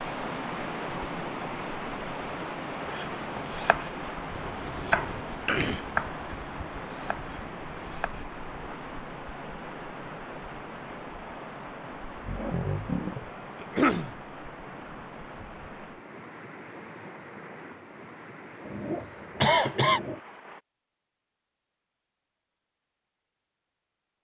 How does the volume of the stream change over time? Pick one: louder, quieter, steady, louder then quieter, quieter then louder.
quieter.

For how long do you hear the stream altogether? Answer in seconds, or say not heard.
21 s.